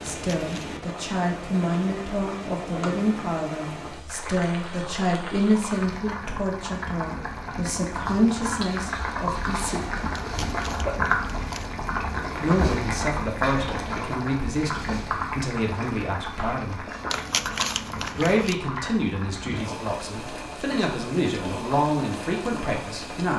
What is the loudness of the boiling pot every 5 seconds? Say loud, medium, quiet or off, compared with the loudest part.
medium, loud, loud, medium, medium.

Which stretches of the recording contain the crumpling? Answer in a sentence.
The crumpling can be heard from 0.1 to 0.7 s, from 10.1 to 11.7 s and from 17.1 to 18.6 s.